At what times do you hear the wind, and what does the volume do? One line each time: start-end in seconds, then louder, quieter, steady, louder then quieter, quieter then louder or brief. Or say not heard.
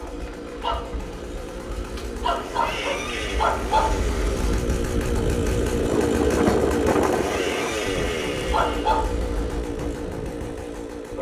4.3-11.1 louder then quieter.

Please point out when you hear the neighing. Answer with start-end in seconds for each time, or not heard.
2.6-3.5, 7.2-9.0.